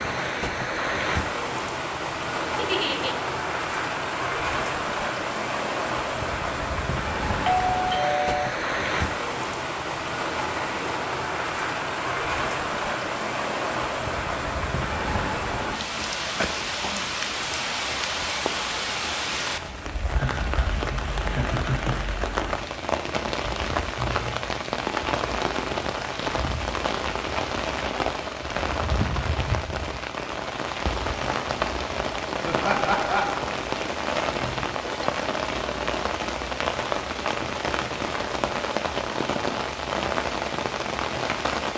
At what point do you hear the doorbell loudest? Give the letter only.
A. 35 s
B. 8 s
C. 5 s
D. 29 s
B.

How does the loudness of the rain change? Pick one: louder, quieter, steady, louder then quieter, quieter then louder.
steady.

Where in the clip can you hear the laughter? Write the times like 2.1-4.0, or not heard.
2.5-3.1, 20.1-22.0, 32.5-33.5.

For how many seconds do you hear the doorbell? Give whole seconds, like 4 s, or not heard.
2 s.